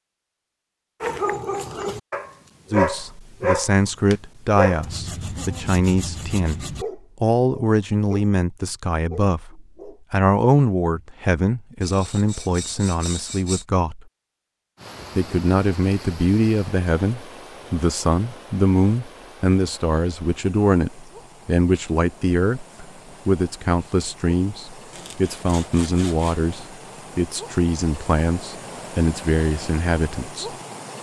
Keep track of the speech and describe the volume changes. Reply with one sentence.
The loudness of the speech stays about the same.